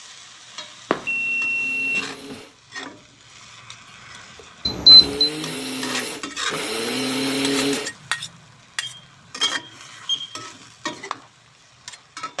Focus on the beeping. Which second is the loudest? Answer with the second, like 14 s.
5 s.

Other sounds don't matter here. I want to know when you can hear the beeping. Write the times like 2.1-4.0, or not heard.
0.9-2.0, 4.7-5.3, 8.8-10.4.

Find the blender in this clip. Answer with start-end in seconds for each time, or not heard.
1.4-7.9.